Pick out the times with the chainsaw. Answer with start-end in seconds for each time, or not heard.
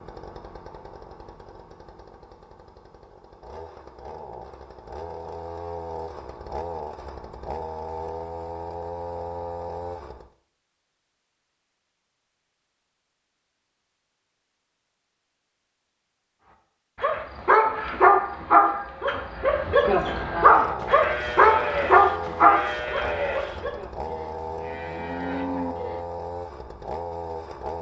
0.0-10.3, 20.4-27.7.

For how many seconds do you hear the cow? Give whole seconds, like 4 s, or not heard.
6 s.